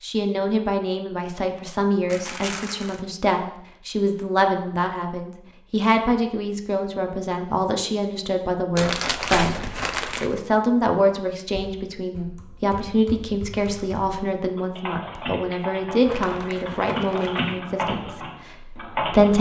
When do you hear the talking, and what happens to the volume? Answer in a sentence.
The talking can be heard from 0.0 to 19.3 s, at a steady volume.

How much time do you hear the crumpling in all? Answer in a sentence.
You can hear the crumpling for 4 seconds altogether.